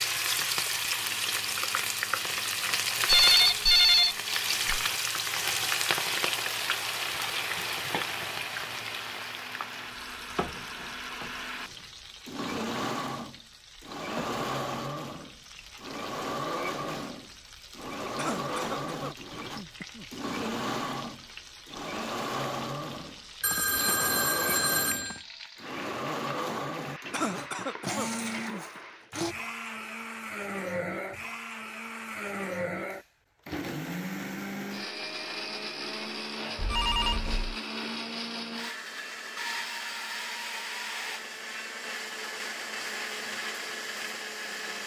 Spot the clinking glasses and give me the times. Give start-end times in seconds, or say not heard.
not heard.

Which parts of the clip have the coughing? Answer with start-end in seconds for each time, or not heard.
18.1-20.1, 27.1-28.8.